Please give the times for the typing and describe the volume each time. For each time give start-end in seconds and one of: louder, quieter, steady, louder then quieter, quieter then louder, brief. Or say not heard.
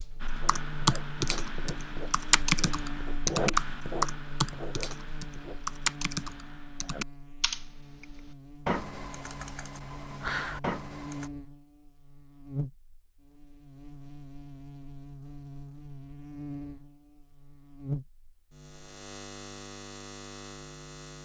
0.2-11.3 quieter.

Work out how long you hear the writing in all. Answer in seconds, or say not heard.
5 s.